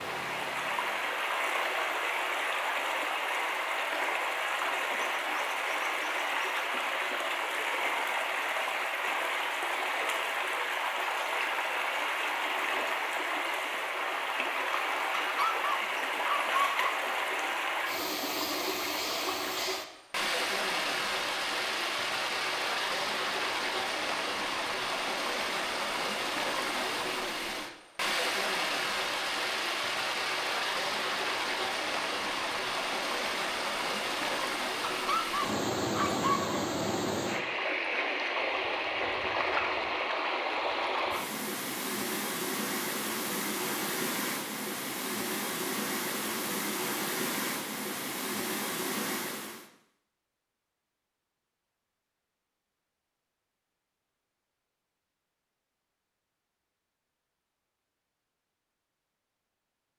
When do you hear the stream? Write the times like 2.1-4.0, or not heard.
0.0-49.7.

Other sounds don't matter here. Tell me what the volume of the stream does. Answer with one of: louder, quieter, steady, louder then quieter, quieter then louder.
steady.